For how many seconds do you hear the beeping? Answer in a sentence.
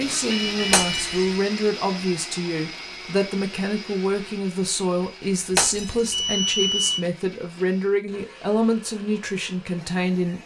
You can hear the beeping for 2 seconds altogether.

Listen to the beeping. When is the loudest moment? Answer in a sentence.
The volume of the beeping peaks at 7 seconds.